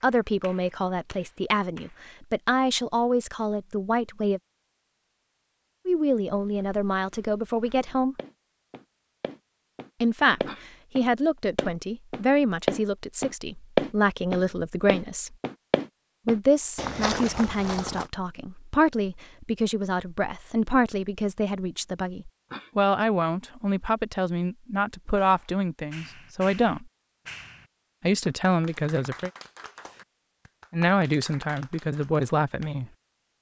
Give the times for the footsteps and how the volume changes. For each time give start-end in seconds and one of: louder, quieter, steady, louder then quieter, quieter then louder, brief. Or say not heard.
6.3-18.1 louder then quieter.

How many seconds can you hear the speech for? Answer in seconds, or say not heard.
26 s.